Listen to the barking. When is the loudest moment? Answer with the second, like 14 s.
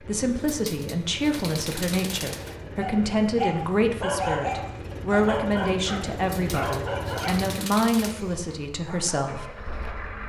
4 s.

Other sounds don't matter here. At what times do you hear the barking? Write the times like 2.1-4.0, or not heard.
2.8-9.2.